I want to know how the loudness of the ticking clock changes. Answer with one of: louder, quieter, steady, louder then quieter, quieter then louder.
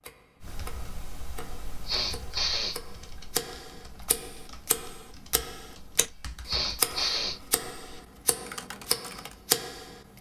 louder.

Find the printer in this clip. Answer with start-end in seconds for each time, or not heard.
not heard.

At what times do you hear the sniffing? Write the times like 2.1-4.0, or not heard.
1.4-3.2, 6.0-7.4.